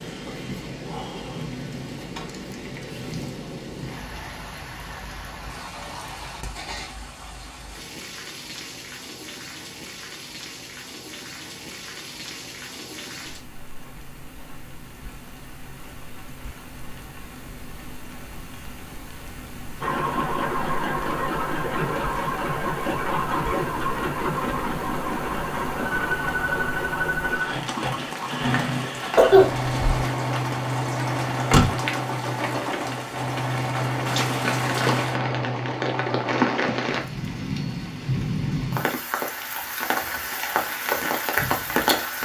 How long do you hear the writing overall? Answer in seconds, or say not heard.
not heard.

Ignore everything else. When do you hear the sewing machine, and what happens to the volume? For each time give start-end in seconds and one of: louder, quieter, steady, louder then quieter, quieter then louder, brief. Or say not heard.
19.8-37.0 steady.